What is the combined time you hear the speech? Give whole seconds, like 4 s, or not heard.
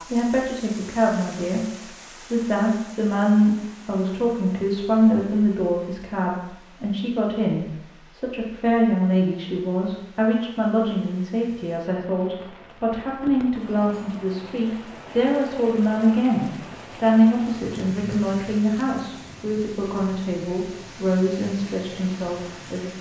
23 s.